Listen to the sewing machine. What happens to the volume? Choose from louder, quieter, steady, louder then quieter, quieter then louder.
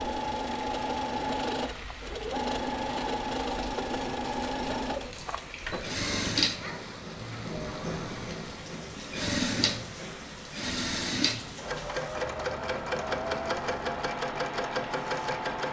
steady.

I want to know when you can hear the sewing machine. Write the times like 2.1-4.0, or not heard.
0.0-15.6.